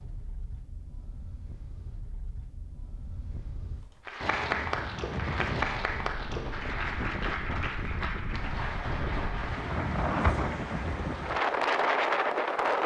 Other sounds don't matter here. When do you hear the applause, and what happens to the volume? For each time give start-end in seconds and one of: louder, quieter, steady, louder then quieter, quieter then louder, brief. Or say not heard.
4.0-12.8 quieter.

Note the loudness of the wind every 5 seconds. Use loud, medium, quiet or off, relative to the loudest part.
quiet, medium, loud.